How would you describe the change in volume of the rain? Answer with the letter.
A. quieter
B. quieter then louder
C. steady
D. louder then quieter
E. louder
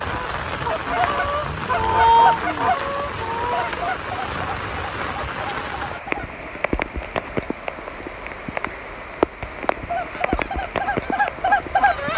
C.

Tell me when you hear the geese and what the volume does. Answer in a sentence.
You can hear the geese from 0.0 to 6.4 s, getting louder then quieter; and briefly from 9.8 to 12.1 s.